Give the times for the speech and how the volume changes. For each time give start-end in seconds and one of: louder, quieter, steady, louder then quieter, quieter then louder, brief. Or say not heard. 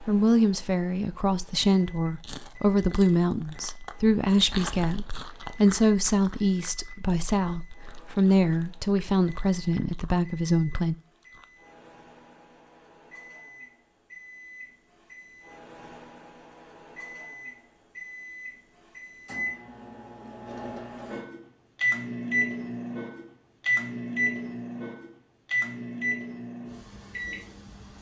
0.0-10.9 steady.